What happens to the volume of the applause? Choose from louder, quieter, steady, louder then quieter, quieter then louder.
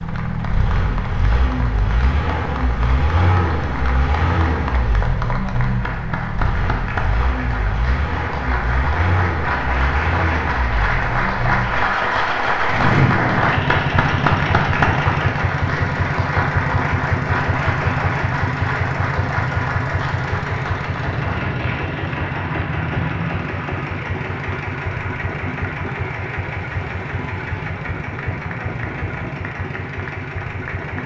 louder then quieter.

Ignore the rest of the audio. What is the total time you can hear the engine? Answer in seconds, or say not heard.
31 s.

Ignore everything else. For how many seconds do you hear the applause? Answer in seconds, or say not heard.
31 s.